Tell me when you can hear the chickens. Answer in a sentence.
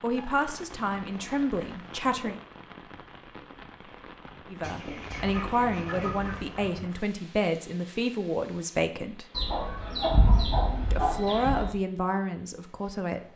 The chickens can be heard from 0.1 to 2.4 s, from 4.6 to 6.8 s and from 9.3 to 11.8 s.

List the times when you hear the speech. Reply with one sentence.
The speech can be heard from 0.0 to 2.4 s, from 4.5 to 9.2 s and from 10.9 to 13.3 s.